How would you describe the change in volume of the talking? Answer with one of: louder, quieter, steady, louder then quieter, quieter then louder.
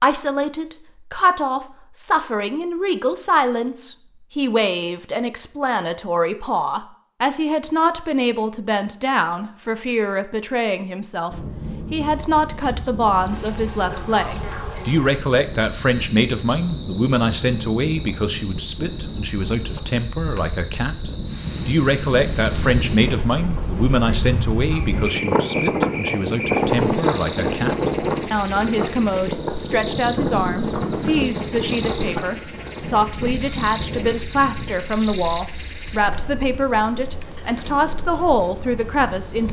steady.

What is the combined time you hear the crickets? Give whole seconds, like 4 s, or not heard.
27 s.